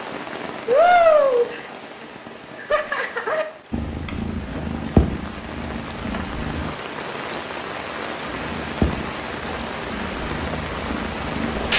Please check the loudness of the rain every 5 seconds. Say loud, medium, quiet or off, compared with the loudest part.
loud, medium, medium.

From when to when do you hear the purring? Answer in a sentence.
The purring can be heard from 3.7 to 6.8 s and from 8.2 to 11.7 s.